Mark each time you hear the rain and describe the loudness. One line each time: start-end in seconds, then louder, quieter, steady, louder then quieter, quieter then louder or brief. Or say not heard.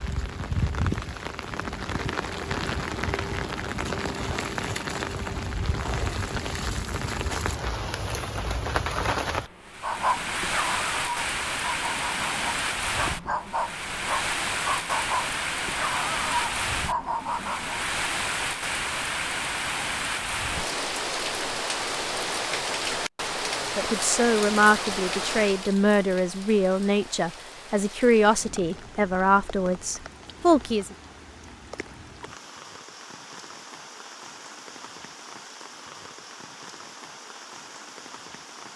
0.0-38.7 quieter.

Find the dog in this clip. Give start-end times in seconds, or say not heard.
9.8-17.8.